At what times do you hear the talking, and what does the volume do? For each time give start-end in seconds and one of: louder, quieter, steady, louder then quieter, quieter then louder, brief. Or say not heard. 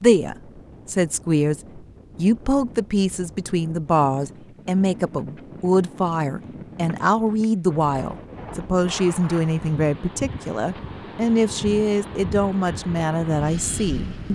0.0-14.3 steady.